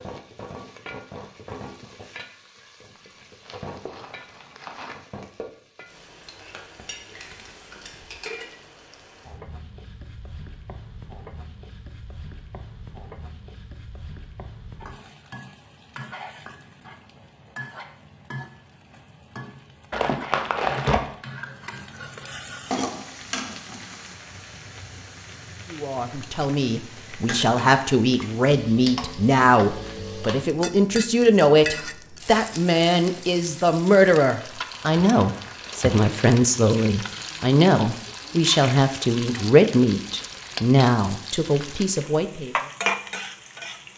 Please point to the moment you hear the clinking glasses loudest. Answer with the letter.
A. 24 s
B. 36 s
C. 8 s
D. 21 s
C.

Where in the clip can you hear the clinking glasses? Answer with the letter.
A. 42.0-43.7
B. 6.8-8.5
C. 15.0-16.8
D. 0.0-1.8
B.